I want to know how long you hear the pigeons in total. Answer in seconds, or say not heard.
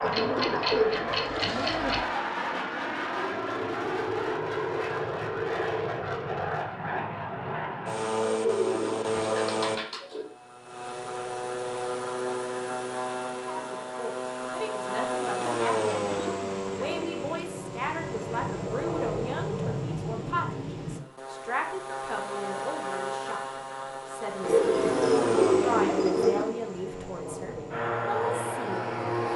8 s.